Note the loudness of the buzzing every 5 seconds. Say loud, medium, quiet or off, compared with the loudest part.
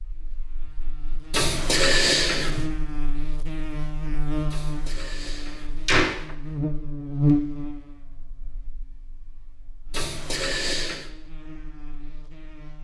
medium, loud, quiet.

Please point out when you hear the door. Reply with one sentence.
You can hear the door from 1.3 to 2.7 s, from 4.5 to 6.3 s and from 9.9 to 11.1 s.